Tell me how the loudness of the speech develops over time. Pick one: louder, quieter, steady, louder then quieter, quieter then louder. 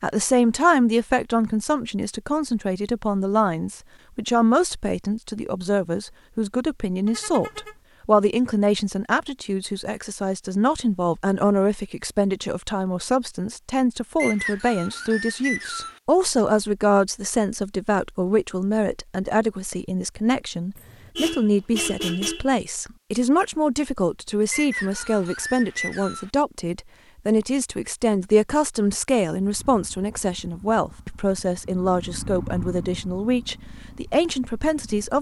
steady.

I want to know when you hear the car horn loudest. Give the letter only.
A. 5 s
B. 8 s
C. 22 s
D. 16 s
C.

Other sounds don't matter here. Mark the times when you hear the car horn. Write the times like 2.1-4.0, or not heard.
7.0-7.8, 20.8-22.5.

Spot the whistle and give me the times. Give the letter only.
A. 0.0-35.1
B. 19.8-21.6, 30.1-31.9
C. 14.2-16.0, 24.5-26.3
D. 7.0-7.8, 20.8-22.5
C.